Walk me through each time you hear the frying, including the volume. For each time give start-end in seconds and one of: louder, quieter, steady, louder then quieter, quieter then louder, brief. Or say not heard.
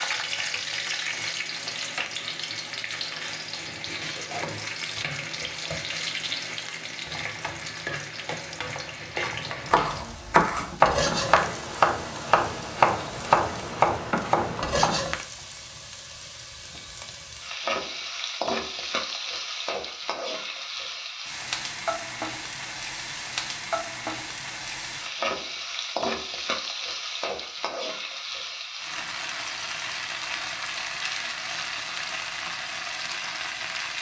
0.0-33.9 steady.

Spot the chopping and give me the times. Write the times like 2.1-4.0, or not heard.
9.7-14.9.